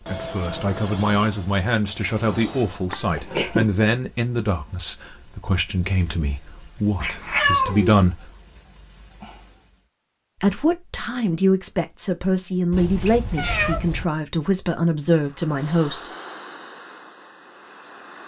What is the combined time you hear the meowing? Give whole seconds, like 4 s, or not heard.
3 s.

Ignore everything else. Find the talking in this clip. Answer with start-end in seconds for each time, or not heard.
0.1-8.3, 10.4-16.1.